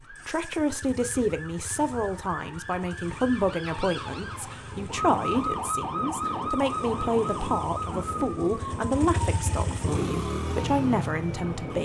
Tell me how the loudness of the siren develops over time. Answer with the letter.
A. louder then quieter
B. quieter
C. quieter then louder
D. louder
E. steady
A.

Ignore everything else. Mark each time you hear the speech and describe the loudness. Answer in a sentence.
The speech can be heard from 0.1 to 11.8 s, at a steady volume.